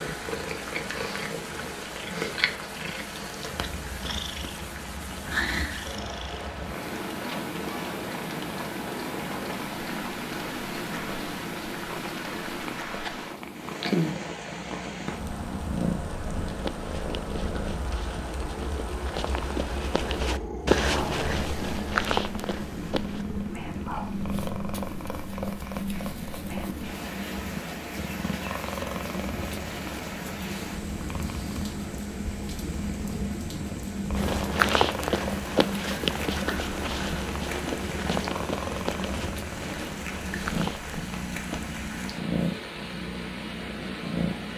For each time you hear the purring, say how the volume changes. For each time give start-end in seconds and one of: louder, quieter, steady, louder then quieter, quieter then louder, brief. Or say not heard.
0.0-44.5 steady.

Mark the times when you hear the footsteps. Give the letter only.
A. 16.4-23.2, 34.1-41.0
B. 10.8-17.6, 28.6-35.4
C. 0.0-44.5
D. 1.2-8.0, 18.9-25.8
A.